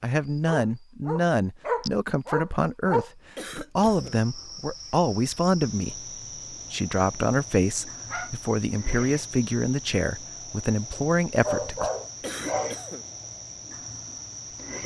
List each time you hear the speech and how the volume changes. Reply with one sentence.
You can hear the speech from 0.0 to 11.9 s, at a steady volume.